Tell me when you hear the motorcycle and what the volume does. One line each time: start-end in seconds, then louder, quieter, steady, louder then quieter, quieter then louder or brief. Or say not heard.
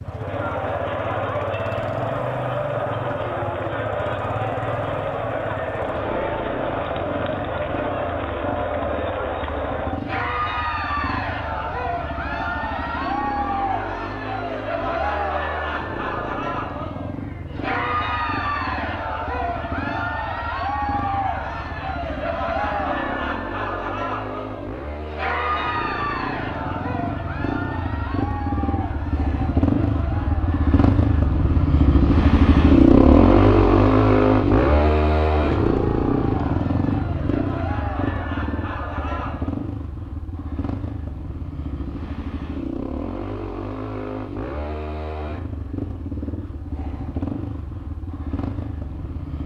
0.0-49.4 louder then quieter.